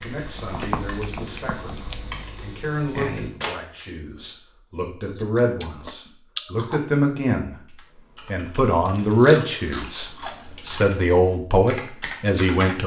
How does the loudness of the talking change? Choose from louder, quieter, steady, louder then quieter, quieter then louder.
louder.